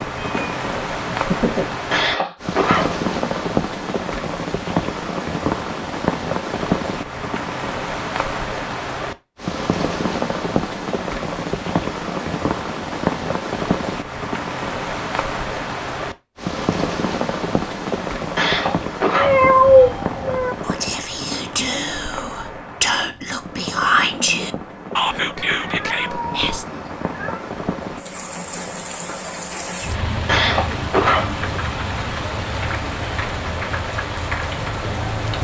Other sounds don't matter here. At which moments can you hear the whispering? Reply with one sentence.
You can hear the whispering from 20.6 to 26.6 s.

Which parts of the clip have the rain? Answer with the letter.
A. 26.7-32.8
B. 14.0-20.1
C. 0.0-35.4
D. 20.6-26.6
C.